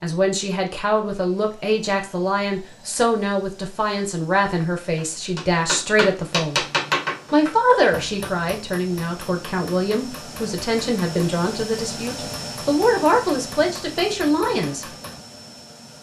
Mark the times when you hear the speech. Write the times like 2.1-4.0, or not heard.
0.0-6.7, 7.3-14.8.